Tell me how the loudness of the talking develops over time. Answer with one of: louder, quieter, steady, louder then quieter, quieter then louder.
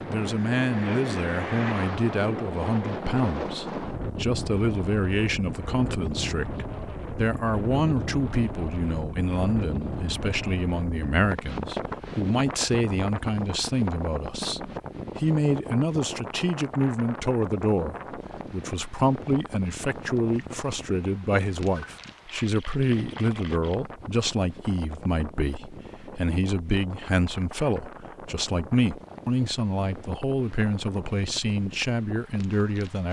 steady.